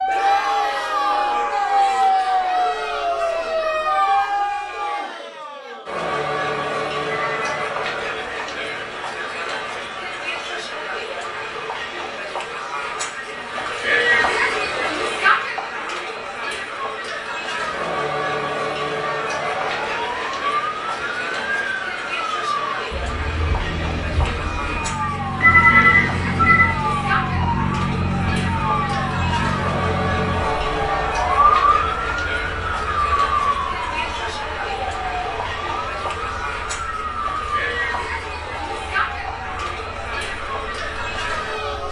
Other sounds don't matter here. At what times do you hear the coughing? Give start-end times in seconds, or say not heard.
not heard.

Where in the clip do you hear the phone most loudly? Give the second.
26 s.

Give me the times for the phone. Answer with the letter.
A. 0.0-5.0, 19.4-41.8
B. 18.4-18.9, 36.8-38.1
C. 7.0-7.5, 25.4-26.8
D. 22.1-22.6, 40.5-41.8
C.